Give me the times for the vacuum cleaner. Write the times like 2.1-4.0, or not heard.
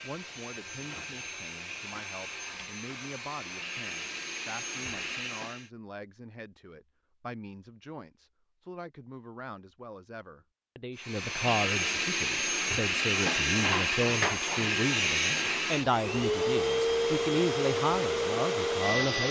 0.0-5.7, 10.9-19.2.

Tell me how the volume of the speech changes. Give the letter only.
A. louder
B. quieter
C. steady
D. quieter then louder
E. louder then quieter
A.